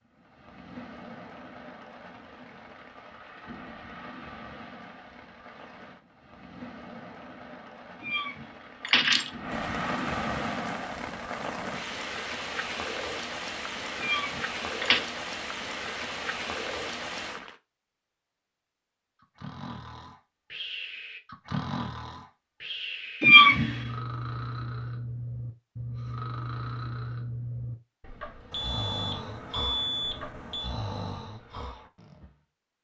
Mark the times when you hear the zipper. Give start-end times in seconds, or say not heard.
not heard.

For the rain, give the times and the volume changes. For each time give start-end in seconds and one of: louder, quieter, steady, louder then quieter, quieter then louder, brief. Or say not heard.
0.0-17.6 louder.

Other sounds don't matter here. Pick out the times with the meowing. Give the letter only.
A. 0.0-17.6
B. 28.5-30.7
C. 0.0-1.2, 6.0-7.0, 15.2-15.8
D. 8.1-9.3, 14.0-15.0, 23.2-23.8
D.